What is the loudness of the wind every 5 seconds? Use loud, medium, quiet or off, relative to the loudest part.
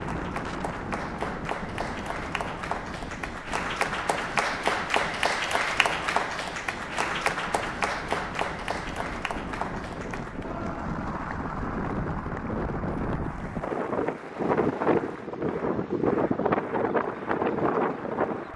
medium, quiet, loud, loud.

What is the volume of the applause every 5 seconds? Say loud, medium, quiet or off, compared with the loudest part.
loud, loud, medium, quiet.